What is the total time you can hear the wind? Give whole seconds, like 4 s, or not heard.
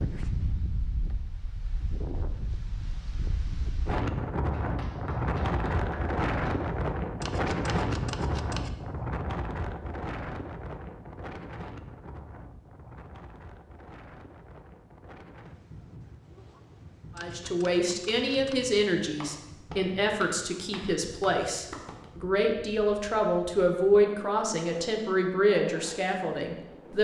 27 s.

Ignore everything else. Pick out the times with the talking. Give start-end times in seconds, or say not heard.
17.1-26.9.